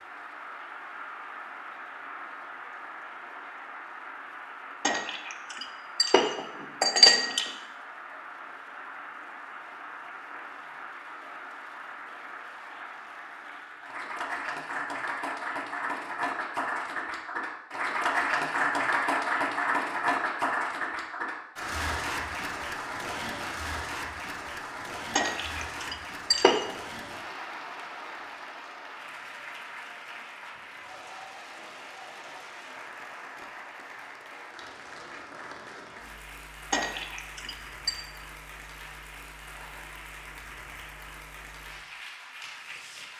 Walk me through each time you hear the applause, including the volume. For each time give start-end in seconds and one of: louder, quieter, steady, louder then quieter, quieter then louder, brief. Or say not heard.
0.0-43.1 louder then quieter.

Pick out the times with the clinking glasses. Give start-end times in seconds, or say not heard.
4.8-7.5, 25.1-26.7, 36.7-38.0.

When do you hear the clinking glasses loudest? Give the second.
7 s.